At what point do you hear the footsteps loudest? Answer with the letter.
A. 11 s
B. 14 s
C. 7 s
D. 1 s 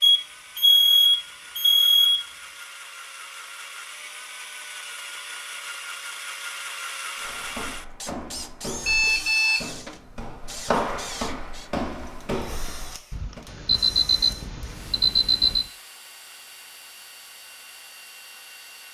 A.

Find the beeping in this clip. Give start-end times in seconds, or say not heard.
0.0-2.2, 8.8-9.7, 13.1-15.7.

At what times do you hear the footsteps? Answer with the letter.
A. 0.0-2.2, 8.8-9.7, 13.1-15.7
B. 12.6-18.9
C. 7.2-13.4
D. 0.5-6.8
C.